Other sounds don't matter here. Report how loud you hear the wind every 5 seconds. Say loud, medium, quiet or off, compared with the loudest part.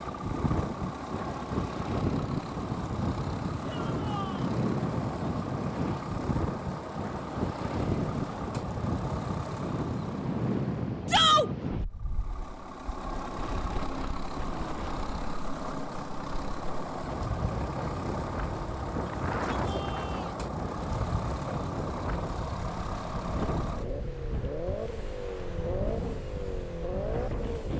loud, loud, loud, loud, medium, medium.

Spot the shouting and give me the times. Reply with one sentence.
The shouting can be heard from 3.6 to 4.5 s, from 11.1 to 11.5 s and from 19.2 to 20.4 s.